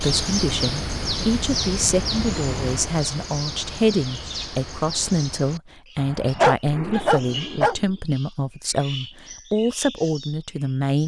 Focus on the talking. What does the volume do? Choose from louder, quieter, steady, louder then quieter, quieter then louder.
steady.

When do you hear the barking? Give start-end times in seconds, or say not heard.
6.0-7.8.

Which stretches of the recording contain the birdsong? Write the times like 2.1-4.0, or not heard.
0.0-11.0.